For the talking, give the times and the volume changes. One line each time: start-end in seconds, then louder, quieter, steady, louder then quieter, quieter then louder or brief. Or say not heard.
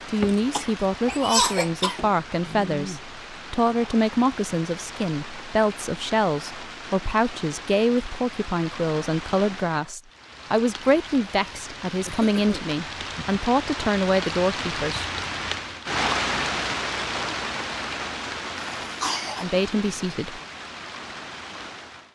0.1-15.1 steady
19.4-20.4 brief.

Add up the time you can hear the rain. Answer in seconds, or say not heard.
22 s.